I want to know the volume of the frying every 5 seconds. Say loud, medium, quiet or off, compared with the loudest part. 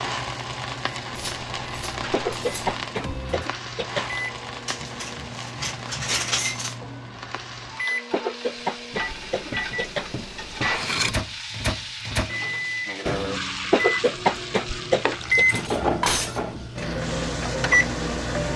loud, medium, loud, loud.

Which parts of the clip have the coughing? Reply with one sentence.
You can hear the coughing from 2.1 to 4.1 s, from 8.1 to 10.1 s and from 13.7 to 15.4 s.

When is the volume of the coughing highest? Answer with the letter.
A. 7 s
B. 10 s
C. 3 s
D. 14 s
D.